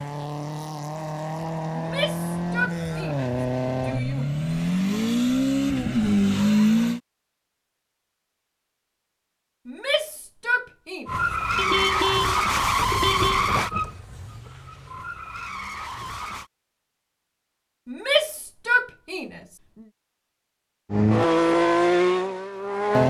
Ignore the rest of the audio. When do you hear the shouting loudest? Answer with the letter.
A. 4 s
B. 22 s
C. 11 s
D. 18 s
D.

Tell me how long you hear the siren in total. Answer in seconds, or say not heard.
not heard.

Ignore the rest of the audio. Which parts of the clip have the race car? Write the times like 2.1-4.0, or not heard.
0.0-7.0, 11.1-16.5, 20.9-23.0.